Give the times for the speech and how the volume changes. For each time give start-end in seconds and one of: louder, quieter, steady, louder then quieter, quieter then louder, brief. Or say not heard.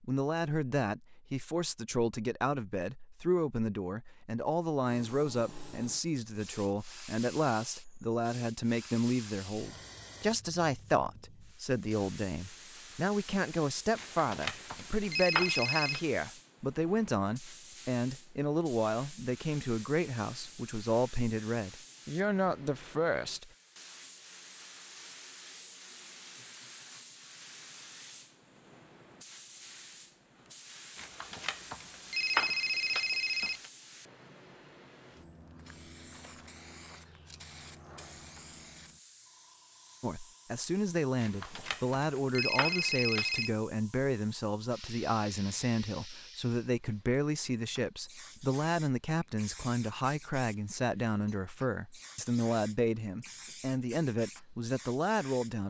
0.0-23.5 steady
40.0-55.6 steady.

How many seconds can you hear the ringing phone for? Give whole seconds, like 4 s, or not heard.
7 s.